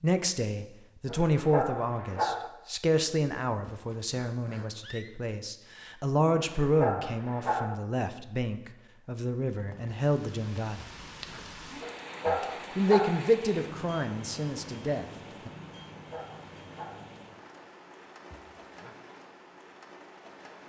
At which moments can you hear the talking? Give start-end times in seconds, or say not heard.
0.0-10.8, 12.2-15.5.